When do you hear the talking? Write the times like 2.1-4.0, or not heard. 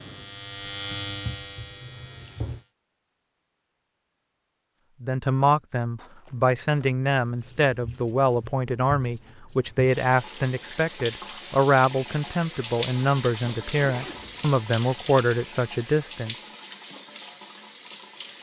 5.0-16.4.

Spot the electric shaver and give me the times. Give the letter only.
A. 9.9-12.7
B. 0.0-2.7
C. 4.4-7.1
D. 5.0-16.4
B.